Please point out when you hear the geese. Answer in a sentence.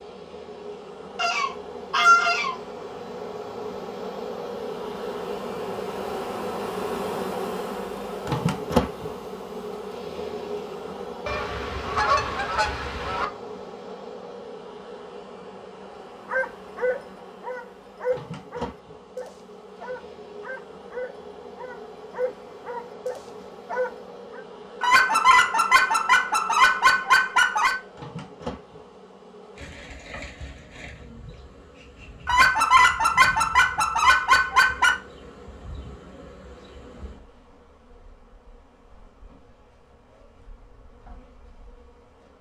The geese can be heard from 1.1 to 2.5 s, from 11.2 to 13.2 s, from 24.8 to 27.8 s and from 32.2 to 35.0 s.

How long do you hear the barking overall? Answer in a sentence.
The barking can be heard for 8 seconds in total.